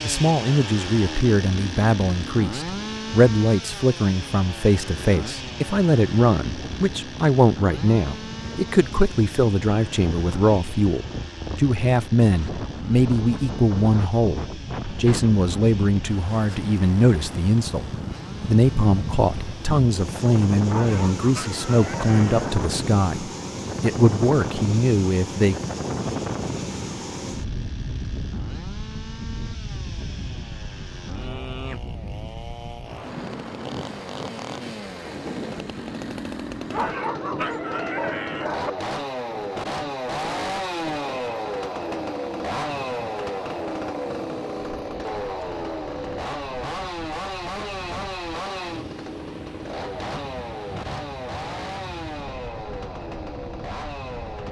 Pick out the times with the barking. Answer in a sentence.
The barking can be heard from 20.6 to 22.6 s and from 36.7 to 38.7 s.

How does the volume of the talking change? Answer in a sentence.
The volume of the talking stays about the same.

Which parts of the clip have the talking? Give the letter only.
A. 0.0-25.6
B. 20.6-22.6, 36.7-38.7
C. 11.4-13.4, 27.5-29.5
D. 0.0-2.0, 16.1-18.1
A.